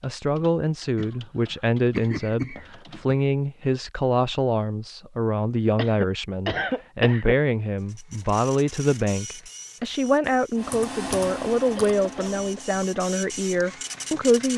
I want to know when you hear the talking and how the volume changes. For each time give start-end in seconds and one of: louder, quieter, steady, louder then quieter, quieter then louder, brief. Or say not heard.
0.0-14.5 steady.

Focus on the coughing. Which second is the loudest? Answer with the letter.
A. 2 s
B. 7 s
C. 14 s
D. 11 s
B.